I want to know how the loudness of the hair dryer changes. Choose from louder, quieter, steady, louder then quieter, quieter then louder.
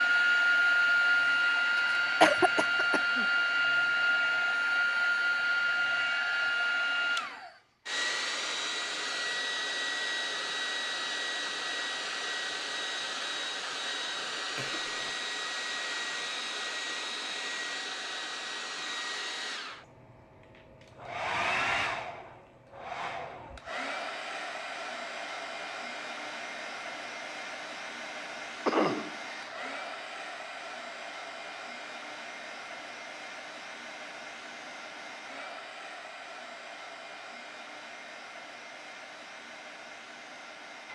quieter.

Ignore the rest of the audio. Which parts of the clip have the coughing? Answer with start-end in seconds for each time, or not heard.
2.2-3.2, 14.6-15.1, 28.6-29.7.